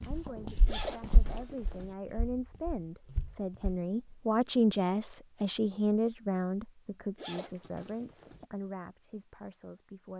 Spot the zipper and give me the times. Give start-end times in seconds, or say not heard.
0.7-1.9, 7.2-8.4.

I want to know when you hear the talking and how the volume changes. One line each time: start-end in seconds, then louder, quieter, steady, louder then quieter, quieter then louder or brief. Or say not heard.
0.0-10.1 louder then quieter.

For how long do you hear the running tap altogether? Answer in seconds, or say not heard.
not heard.